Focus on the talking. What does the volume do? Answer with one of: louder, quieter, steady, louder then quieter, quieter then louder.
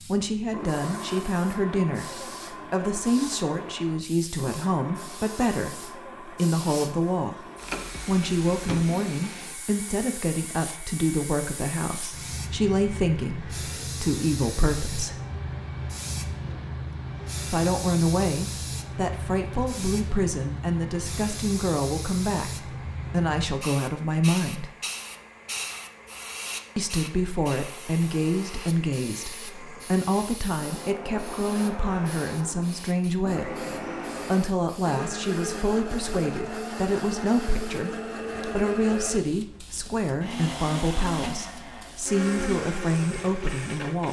steady.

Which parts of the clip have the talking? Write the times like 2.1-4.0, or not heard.
0.1-7.5, 8.1-15.2, 17.4-24.7, 26.8-33.6, 34.3-44.0.